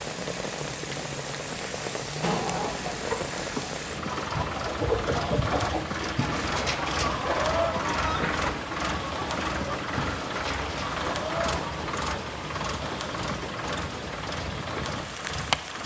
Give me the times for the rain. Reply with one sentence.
You can hear the rain from 0.0 to 15.8 s.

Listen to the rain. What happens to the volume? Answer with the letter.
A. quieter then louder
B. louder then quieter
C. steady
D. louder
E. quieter
C.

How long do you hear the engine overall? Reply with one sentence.
You can hear the engine for 16 seconds altogether.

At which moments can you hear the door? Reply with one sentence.
The door can't be heard in this clip.